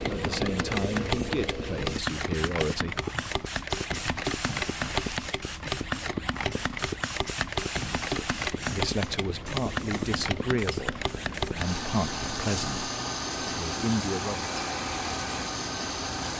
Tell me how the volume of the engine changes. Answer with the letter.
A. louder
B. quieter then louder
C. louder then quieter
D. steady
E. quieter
D.